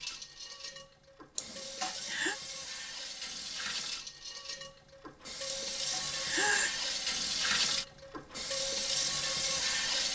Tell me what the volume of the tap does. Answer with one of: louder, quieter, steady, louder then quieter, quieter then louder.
louder.